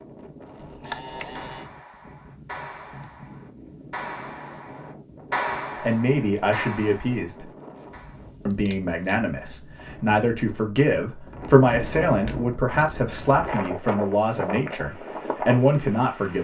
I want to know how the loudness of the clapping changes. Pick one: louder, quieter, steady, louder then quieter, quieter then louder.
louder then quieter.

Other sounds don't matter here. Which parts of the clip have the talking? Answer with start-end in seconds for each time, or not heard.
5.8-7.5, 8.4-16.3.